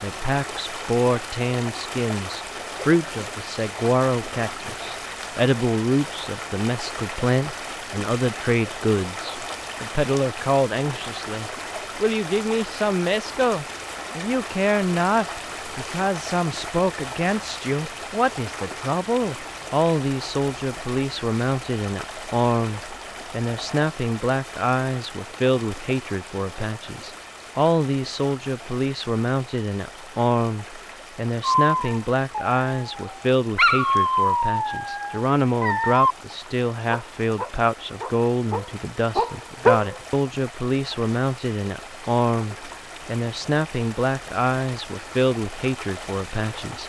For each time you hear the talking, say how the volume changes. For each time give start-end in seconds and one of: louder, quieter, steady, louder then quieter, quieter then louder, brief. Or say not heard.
0.0-46.8 steady.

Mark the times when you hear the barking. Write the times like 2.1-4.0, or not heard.
31.4-39.9.